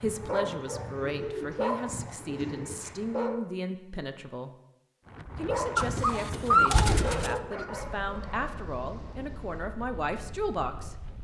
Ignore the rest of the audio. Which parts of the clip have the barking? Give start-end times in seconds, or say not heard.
0.0-3.4, 5.3-8.5.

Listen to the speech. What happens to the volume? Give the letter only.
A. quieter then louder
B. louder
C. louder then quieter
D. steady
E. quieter
D.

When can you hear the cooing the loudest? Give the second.
7 s.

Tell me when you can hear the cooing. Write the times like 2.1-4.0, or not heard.
0.2-3.0, 5.8-7.4.